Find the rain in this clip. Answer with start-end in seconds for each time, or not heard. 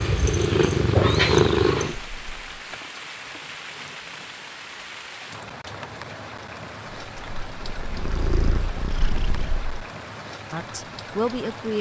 0.0-11.7.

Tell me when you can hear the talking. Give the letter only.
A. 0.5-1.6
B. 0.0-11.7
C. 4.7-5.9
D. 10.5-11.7
D.